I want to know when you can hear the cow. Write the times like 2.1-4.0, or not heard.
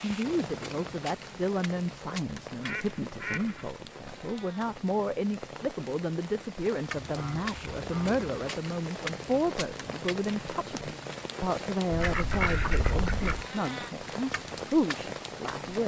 not heard.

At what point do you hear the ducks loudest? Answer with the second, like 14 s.
13 s.